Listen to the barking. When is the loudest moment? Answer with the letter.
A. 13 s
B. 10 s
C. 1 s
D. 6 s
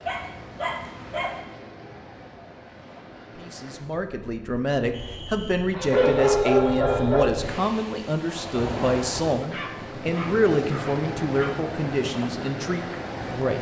D.